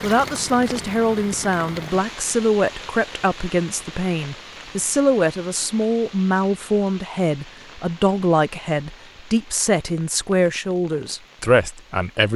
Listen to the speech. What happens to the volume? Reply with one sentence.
The loudness of the speech stays about the same.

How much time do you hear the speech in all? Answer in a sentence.
You can hear the speech for 12 seconds altogether.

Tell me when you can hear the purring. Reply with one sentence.
The purring can't be heard in this clip.